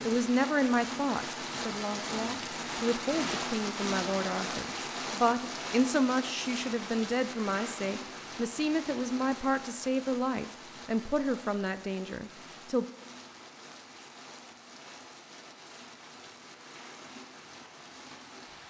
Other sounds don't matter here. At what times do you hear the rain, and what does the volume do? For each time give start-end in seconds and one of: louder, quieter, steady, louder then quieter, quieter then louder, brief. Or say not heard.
0.0-18.6 quieter.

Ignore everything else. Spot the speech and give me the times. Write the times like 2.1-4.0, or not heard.
0.1-12.8.